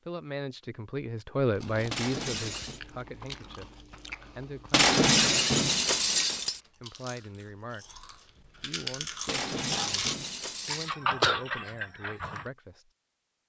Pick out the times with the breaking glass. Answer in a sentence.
You can hear the breaking glass from 1.9 to 2.8 s, from 4.7 to 6.6 s and from 9.2 to 10.9 s.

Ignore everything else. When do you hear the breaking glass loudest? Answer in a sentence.
The volume of the breaking glass peaks at 5 seconds.